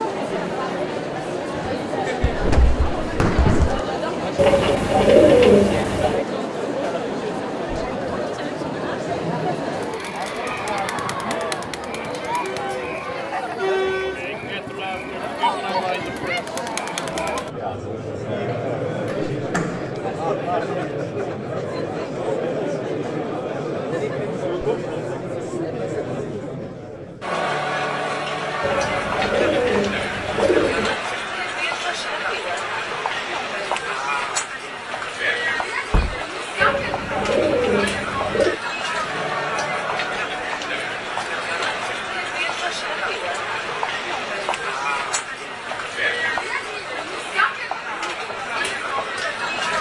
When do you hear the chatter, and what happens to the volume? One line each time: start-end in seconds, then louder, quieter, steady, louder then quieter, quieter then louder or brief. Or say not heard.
0.0-49.7 steady.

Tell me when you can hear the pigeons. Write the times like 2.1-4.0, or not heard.
4.3-6.2, 28.6-31.0, 36.6-38.6.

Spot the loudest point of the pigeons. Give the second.
5 s.